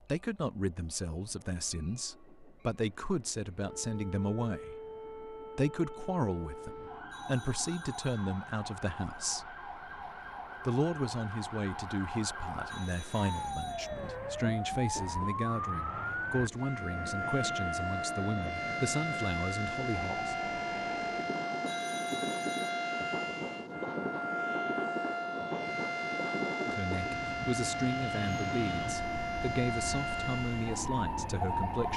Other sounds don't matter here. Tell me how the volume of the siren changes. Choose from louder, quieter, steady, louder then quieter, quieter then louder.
louder.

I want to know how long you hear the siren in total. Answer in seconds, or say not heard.
28 s.